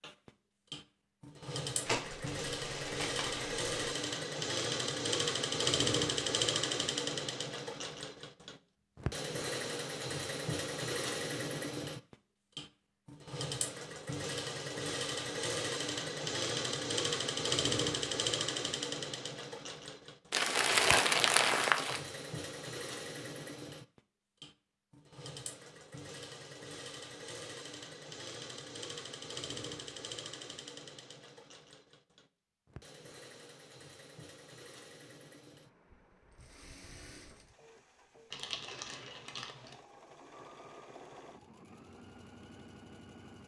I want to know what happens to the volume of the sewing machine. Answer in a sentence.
The volume of the sewing machine goes down.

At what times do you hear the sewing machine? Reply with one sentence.
The sewing machine can be heard from 0.0 to 43.4 s.